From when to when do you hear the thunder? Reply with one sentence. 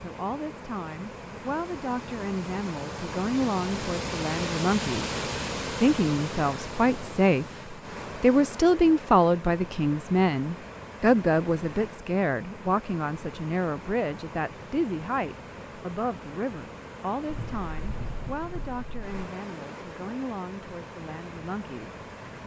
You can hear the thunder from 17.2 to 19.1 s.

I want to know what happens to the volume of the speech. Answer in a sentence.
The volume of the speech goes up, then down.